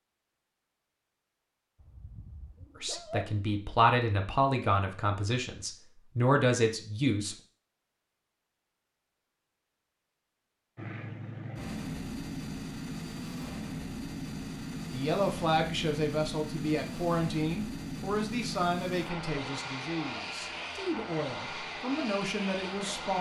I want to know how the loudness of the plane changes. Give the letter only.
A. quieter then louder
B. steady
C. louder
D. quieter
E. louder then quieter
B.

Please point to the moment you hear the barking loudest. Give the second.
3 s.